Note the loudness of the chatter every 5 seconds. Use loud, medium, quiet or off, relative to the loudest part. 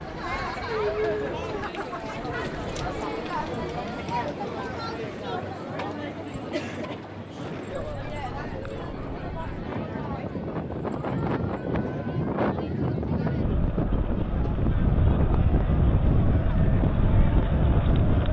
loud, medium, medium, medium.